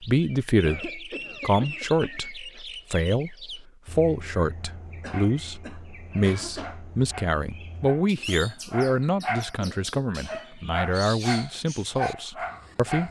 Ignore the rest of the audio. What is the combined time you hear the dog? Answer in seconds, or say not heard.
7 s.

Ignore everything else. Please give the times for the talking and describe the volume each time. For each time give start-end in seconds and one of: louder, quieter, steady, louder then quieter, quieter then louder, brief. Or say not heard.
0.0-13.0 steady.